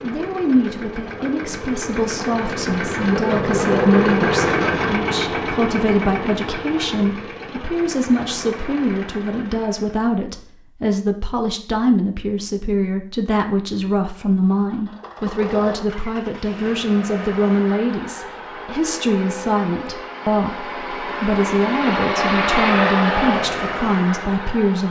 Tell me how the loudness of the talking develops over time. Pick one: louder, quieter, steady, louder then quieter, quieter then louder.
steady.